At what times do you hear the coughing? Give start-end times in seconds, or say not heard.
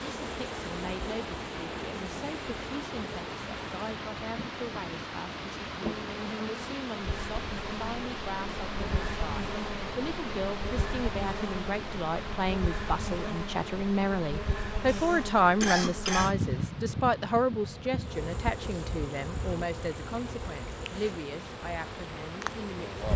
14.8-16.4.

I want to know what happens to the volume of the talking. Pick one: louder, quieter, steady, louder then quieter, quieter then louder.
louder then quieter.